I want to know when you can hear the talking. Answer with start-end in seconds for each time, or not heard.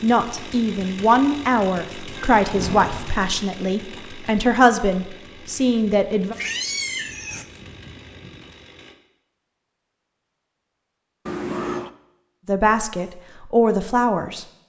0.0-6.3, 12.4-14.4.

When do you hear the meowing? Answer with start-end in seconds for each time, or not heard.
2.1-3.1, 6.3-7.5, 11.2-11.9.